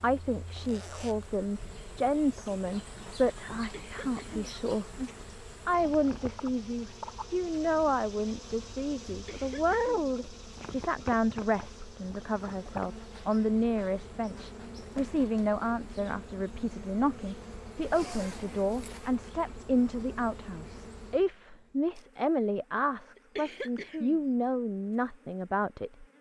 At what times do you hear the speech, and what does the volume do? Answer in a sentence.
The speech can be heard from 0.0 to 26.1 s, at a steady volume.